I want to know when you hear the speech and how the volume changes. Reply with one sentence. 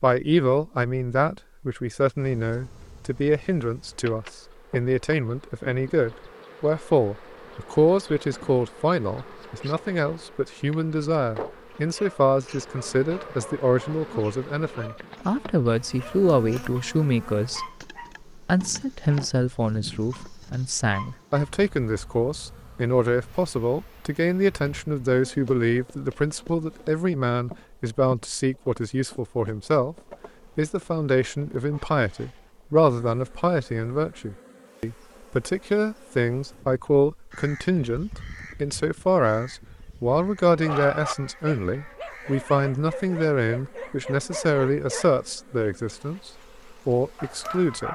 The speech can be heard from 0.0 to 17.7 s, at a steady volume; from 18.4 to 29.9 s, at a steady volume; and from 30.6 to 47.9 s, at a steady volume.